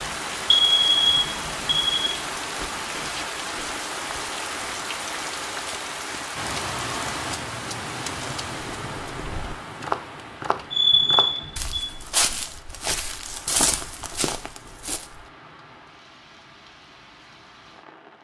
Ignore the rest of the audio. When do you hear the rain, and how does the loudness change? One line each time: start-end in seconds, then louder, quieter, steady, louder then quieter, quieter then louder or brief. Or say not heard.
0.0-18.2 quieter.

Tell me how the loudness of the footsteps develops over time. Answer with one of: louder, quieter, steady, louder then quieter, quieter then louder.
quieter.